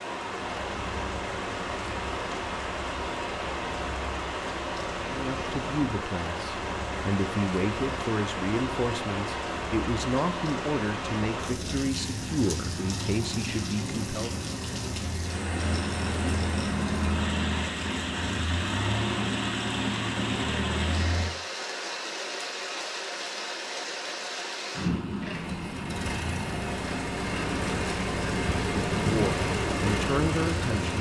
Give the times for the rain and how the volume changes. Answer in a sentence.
The rain can be heard from 0.0 to 30.9 s, at a steady volume.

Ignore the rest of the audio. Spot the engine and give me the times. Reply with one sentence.
You can hear the engine from 0.1 to 21.3 s and from 25.2 to 30.9 s.